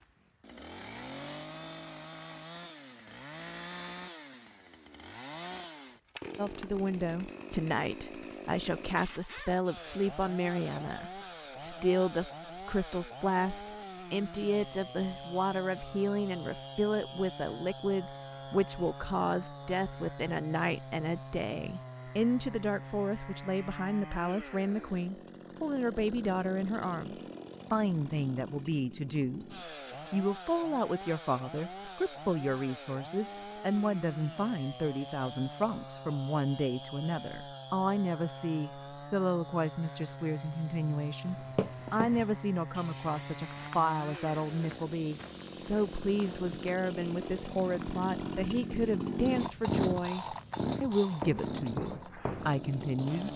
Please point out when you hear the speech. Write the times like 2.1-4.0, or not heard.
6.3-53.3.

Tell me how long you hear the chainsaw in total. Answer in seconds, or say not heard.
53 s.